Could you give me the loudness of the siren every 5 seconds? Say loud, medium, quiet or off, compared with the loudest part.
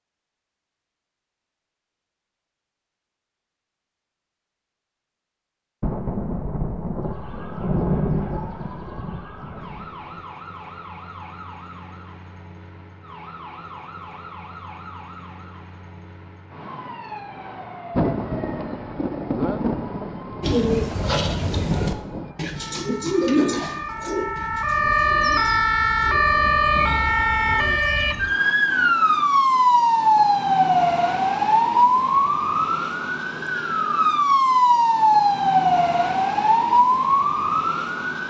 off, quiet, quiet, quiet, medium, loud, loud, loud.